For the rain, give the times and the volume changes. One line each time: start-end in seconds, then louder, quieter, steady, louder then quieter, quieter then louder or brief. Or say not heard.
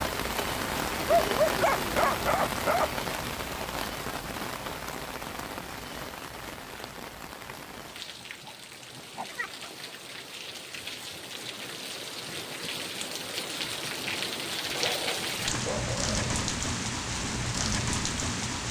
0.0-18.6 quieter then louder.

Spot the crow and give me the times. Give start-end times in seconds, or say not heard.
not heard.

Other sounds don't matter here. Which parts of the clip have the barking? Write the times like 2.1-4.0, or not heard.
1.1-3.0, 7.7-9.7, 14.8-16.6.